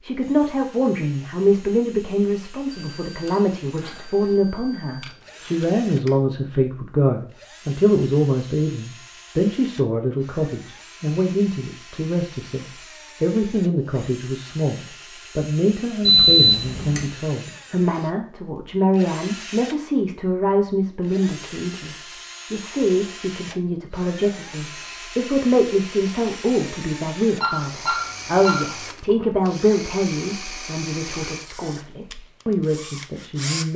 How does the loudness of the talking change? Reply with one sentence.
The loudness of the talking stays about the same.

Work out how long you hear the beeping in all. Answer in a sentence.
The beeping can be heard for 5 seconds in total.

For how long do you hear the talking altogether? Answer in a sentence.
The talking can be heard for 34 seconds in total.